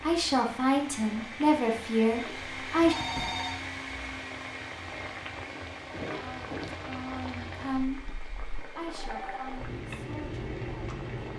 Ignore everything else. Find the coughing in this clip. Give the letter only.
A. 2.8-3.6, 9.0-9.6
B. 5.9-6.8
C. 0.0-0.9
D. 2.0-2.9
B.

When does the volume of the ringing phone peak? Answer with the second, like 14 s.
3 s.